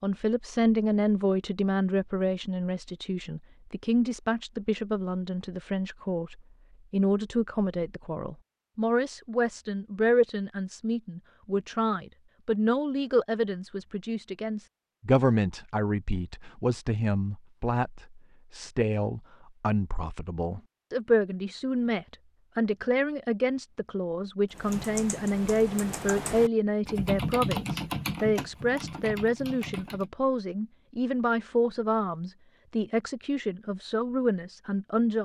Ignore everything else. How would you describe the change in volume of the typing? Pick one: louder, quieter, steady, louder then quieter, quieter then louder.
louder then quieter.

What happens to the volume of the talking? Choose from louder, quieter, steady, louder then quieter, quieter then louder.
steady.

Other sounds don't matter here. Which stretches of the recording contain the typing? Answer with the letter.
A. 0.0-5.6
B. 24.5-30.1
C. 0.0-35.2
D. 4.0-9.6
B.